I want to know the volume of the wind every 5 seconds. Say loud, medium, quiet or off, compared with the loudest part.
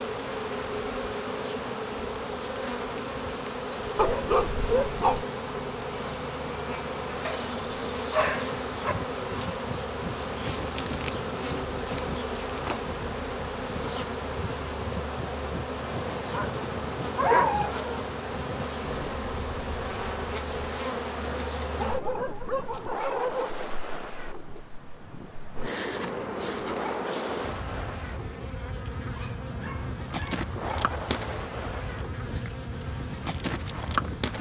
off, loud, loud, loud, loud, loud, loud.